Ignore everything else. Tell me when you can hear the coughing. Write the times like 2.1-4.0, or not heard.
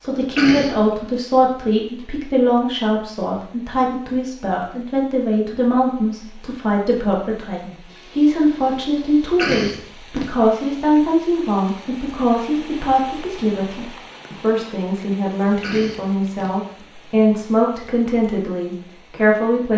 0.2-0.8, 9.2-10.2, 15.4-16.5.